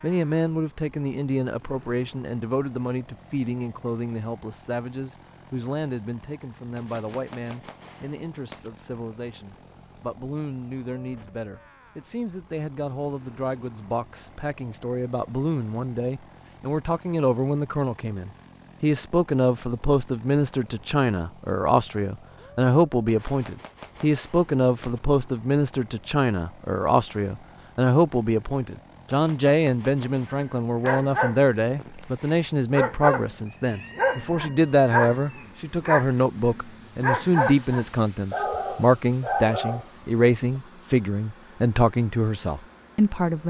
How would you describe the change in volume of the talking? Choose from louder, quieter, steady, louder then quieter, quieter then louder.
louder.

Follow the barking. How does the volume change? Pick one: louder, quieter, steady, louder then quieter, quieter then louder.
steady.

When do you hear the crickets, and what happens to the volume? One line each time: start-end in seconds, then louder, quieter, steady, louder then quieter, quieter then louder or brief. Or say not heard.
not heard.